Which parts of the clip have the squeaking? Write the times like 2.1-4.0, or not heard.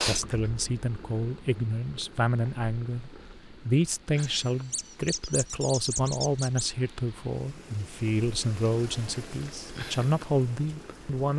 4.2-6.7.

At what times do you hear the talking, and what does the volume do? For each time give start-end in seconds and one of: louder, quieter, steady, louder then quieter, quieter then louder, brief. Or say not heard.
0.0-11.3 steady.